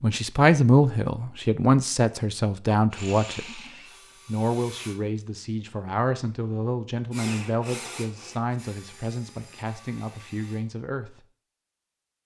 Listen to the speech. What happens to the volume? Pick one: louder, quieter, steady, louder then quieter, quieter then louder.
quieter.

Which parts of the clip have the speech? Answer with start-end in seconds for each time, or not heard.
0.0-3.6, 4.2-11.2.